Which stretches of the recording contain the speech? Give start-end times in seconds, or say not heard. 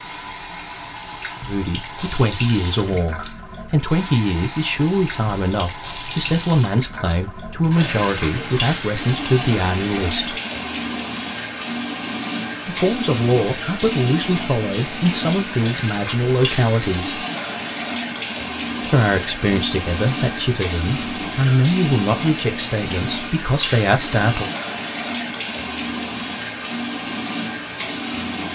1.4-10.4, 12.7-17.2, 18.9-24.5.